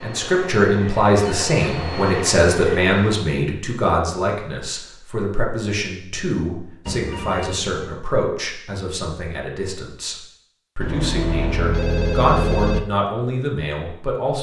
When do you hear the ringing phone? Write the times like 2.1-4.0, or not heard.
1.2-1.6, 6.8-7.9, 10.8-12.8.